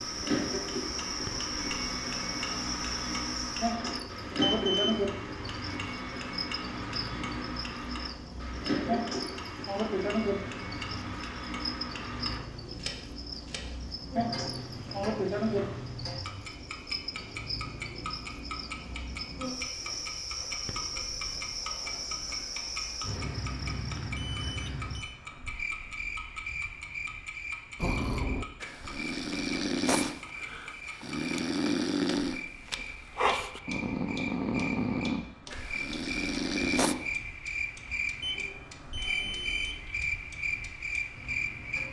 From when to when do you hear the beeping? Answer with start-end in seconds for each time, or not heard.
4.4-5.0, 24.1-25.1, 38.2-39.9.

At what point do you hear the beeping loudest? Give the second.
5 s.